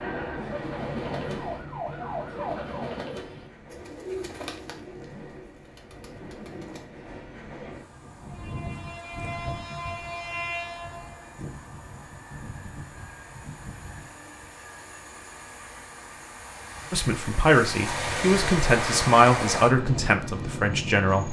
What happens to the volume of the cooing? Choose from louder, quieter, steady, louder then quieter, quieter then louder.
quieter.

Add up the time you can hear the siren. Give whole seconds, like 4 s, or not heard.
3 s.